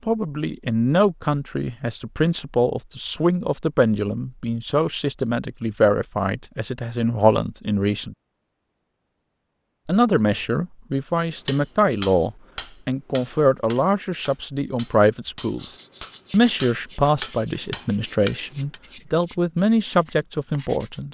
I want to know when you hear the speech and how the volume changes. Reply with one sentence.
You can hear the speech from 0.1 to 8.2 s, at a steady volume; and from 9.8 to 21.0 s, at a steady volume.